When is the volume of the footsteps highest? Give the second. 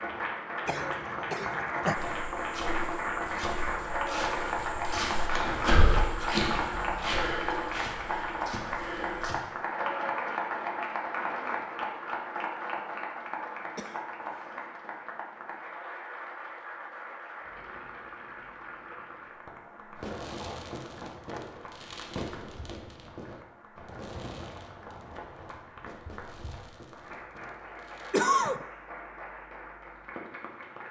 6 s.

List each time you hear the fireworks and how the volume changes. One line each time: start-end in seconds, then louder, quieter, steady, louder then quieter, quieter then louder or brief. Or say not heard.
19.9-28.2 quieter.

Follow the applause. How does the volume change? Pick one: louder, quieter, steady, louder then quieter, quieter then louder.
quieter.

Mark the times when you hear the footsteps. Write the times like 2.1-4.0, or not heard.
1.9-9.4.